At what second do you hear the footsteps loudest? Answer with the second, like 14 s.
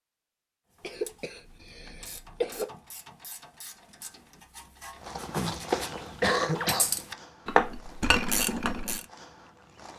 6 s.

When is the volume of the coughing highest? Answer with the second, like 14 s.
6 s.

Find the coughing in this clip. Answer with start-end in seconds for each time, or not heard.
0.8-2.6, 5.3-7.0.